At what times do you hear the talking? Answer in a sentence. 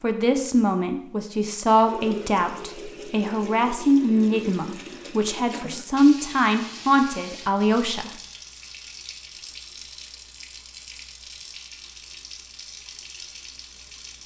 The talking can be heard from 0.0 to 8.1 s.